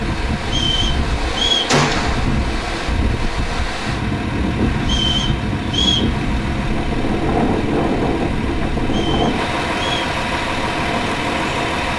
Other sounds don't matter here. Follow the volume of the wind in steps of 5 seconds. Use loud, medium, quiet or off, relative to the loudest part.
loud, loud, medium.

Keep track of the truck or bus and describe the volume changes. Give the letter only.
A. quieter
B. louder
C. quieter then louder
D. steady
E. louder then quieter
B.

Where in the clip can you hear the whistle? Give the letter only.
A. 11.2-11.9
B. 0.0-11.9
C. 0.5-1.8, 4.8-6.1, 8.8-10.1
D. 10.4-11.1
C.